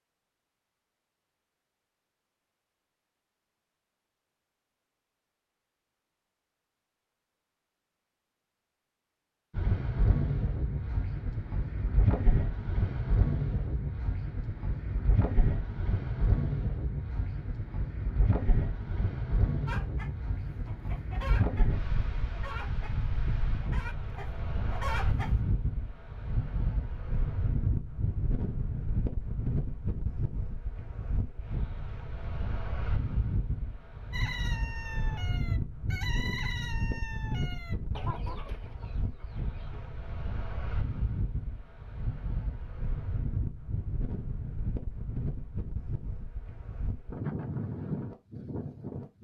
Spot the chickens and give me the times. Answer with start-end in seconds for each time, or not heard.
19.6-21.7, 22.3-25.4, 34.1-39.9.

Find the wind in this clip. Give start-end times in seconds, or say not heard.
9.6-49.1.